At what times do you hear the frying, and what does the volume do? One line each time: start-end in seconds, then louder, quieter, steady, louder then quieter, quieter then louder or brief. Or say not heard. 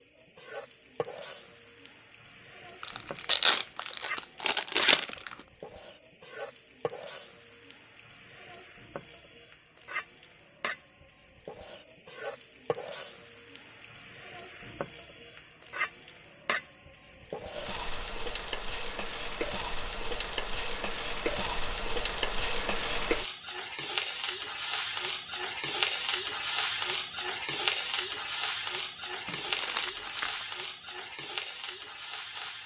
0.0-32.6 louder.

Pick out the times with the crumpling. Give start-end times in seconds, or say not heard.
2.8-5.3, 29.2-30.4.